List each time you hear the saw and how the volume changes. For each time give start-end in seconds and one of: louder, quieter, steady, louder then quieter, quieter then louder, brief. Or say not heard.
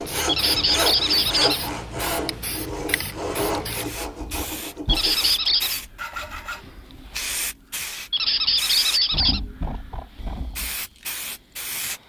0.0-6.6 quieter.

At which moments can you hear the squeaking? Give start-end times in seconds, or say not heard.
0.2-1.6, 4.8-5.8, 8.1-9.4.